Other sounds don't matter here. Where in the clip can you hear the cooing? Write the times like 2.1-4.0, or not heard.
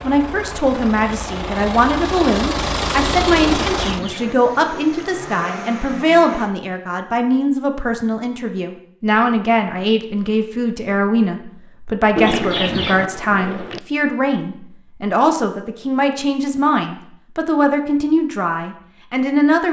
3.4-5.1, 12.2-13.8.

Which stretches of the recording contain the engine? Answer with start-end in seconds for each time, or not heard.
0.0-6.5.